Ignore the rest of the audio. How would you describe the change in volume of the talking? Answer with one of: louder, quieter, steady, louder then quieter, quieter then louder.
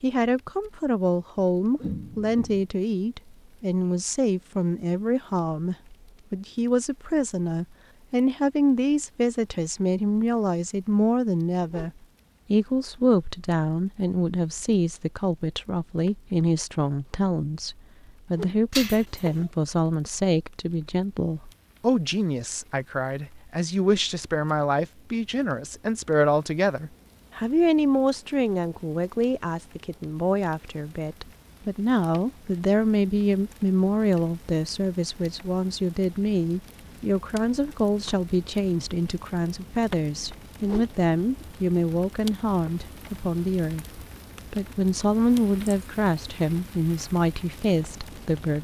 steady.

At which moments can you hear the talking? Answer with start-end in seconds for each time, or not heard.
0.0-48.5.